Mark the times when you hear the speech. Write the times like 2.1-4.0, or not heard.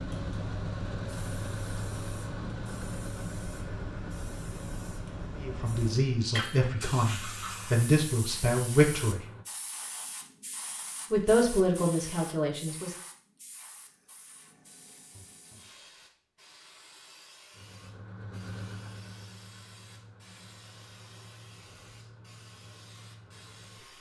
5.3-9.2, 11.1-12.9.